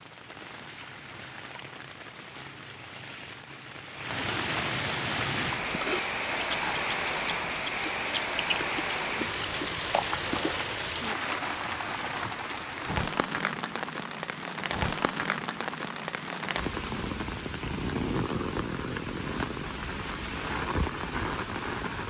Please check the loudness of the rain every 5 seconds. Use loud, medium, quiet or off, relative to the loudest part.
medium, loud, loud, loud, loud.